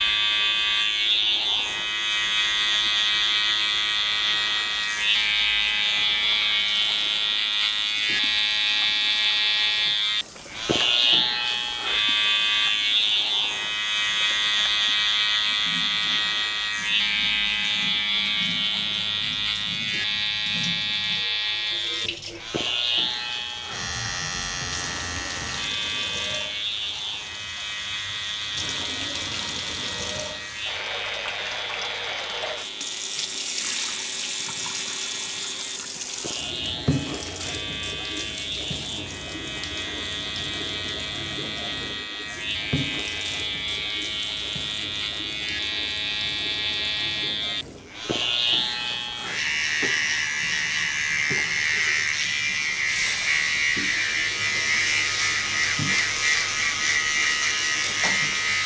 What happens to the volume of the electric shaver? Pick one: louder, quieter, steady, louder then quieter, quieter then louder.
quieter then louder.